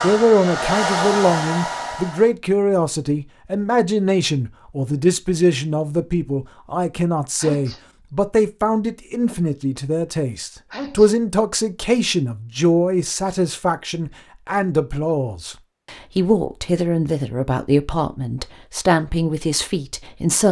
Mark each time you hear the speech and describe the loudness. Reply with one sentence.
The speech can be heard from 0.0 to 20.4 s, at a steady volume.